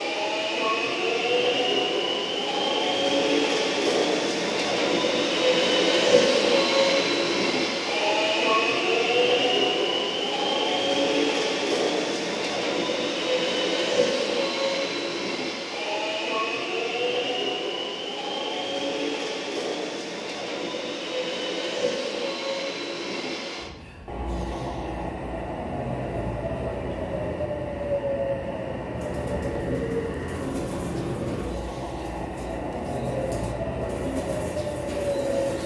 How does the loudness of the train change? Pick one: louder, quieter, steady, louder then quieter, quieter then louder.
quieter.